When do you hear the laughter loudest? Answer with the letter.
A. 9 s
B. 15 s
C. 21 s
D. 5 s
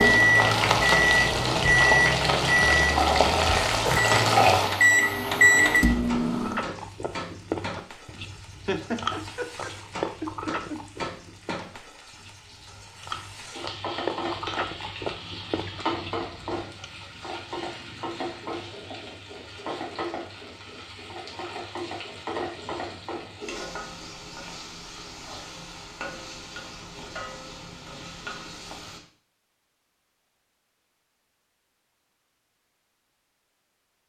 A.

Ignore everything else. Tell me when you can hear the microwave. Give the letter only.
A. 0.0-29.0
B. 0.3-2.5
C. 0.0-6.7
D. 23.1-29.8
C.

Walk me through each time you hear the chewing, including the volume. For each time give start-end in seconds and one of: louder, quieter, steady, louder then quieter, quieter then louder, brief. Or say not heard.
6.4-16.9 quieter then louder.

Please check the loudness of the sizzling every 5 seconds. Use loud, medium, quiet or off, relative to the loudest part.
loud, quiet, quiet, quiet, quiet, quiet, off.